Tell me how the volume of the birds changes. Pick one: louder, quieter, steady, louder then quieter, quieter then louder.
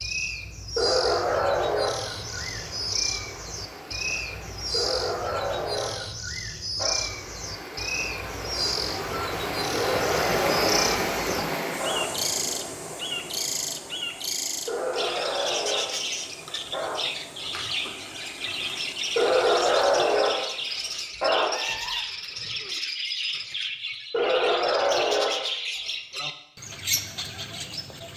steady.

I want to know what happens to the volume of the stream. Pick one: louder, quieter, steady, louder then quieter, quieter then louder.
louder then quieter.